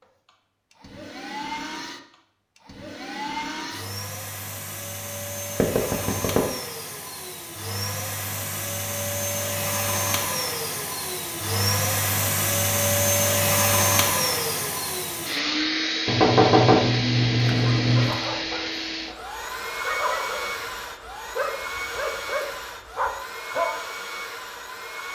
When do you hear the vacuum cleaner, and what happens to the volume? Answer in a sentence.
You can hear the vacuum cleaner from 0.0 to 25.1 s, getting louder then quieter.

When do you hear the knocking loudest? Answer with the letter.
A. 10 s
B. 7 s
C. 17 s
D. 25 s
C.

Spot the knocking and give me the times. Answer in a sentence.
You can hear the knocking from 5.5 to 6.4 s and from 16.1 to 18.1 s.